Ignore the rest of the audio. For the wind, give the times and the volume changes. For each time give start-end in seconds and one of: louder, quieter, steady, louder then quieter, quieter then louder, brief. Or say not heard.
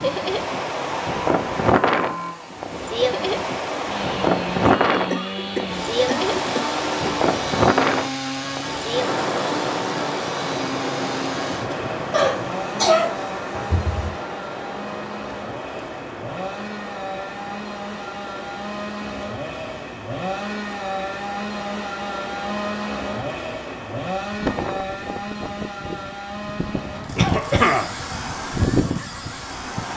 0.0-29.9 quieter then louder.